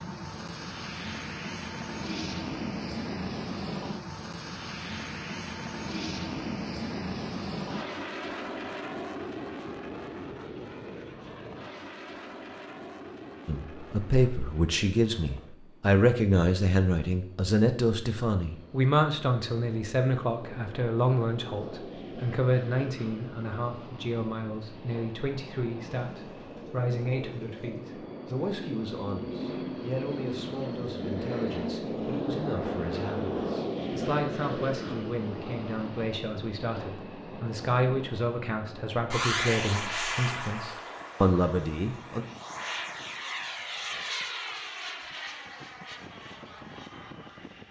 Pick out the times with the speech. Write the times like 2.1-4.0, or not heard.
13.4-42.2.